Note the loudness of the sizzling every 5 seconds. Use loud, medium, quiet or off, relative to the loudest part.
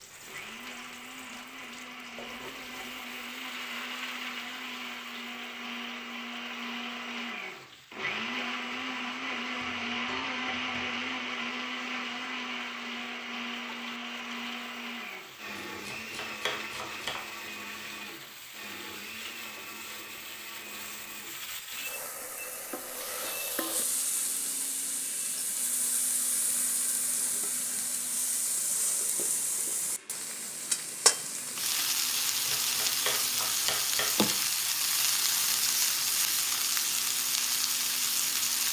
quiet, quiet, quiet, quiet, medium, medium, loud, loud.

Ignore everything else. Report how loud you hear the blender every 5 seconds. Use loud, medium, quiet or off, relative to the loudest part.
medium, loud, loud, medium, quiet, quiet, quiet, quiet.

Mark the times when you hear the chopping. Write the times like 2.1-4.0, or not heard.
15.8-17.1, 32.1-34.1.